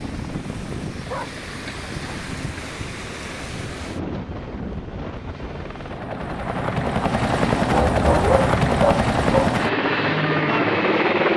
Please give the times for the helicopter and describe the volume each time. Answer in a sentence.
You can hear the helicopter from 0.0 to 11.3 s, getting louder.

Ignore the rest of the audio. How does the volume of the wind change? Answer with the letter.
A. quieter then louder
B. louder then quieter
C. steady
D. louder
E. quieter
C.